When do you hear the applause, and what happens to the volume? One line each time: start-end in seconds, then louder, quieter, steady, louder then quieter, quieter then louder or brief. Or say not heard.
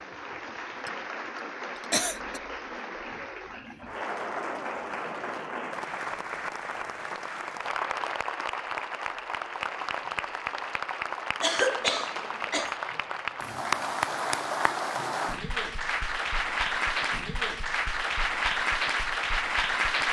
0.0-20.0 louder.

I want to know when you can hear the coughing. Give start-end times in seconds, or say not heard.
1.9-2.4, 11.4-12.7.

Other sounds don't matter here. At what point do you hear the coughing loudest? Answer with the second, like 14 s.
12 s.